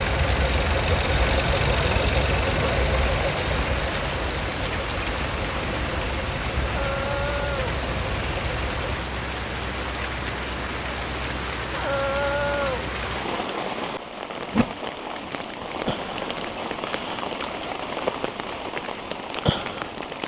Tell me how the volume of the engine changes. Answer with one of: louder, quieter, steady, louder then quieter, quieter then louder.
quieter.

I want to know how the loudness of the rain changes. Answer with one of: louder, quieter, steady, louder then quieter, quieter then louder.
steady.